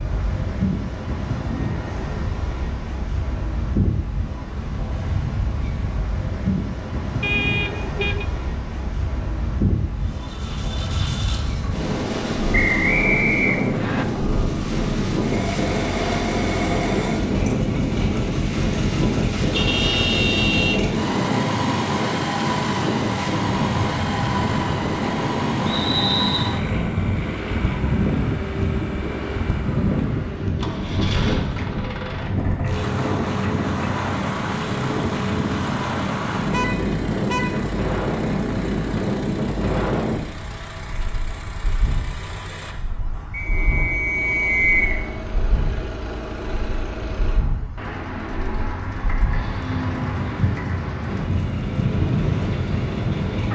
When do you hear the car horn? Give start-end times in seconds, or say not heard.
7.2-8.2, 19.5-20.8, 36.5-37.7.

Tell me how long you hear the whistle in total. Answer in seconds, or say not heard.
4 s.